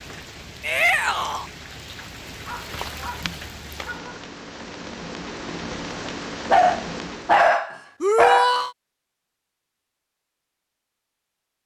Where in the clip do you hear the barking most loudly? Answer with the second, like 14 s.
7 s.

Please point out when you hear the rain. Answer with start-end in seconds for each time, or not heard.
0.0-7.5.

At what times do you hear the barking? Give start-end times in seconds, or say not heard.
2.5-4.2, 6.0-8.6.